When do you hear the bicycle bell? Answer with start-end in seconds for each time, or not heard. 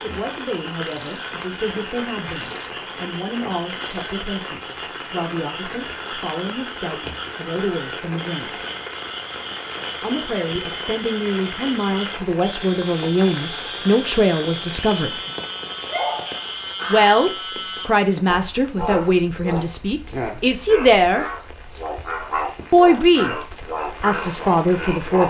10.5-11.0, 14.7-15.2.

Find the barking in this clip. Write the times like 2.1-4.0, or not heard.
15.8-17.2.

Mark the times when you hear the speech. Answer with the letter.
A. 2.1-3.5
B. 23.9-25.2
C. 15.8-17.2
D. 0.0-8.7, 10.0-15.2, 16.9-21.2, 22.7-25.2
D.